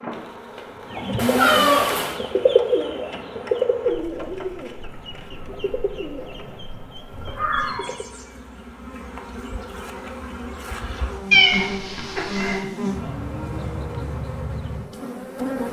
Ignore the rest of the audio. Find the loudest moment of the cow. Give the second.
1 s.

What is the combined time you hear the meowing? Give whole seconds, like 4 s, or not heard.
3 s.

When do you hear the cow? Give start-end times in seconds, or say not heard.
0.1-1.7, 12.8-14.2.